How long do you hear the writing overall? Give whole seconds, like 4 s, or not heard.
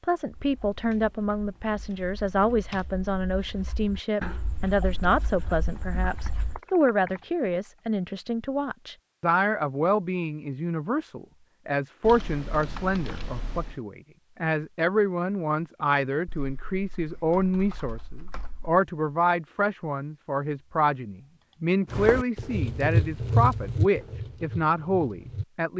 10 s.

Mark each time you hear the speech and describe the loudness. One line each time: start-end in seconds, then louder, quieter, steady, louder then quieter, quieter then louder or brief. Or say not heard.
0.0-25.7 steady.